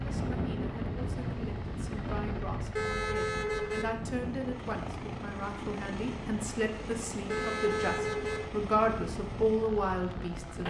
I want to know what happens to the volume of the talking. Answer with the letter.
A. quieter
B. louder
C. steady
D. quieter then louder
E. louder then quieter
B.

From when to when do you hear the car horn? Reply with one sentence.
You can hear the car horn from 2.8 to 3.9 s and from 7.2 to 8.4 s.